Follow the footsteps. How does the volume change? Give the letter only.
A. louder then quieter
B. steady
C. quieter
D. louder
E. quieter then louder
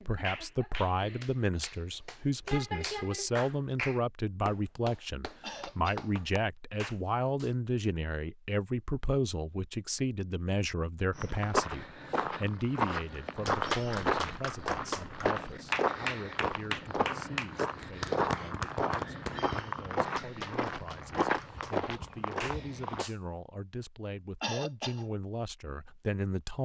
B.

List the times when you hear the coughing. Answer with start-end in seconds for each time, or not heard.
5.4-6.1, 24.4-25.1.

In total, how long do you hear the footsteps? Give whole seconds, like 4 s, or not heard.
12 s.